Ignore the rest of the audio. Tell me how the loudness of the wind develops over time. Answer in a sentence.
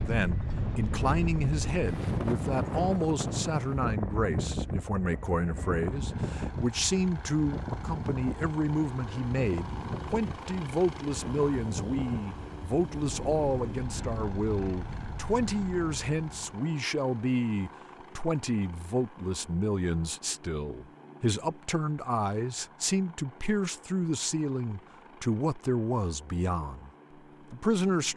The volume of the wind goes down.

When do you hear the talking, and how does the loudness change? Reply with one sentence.
The talking can be heard from 0.0 to 26.9 s, at a steady volume; and briefly from 27.5 to 28.1 s.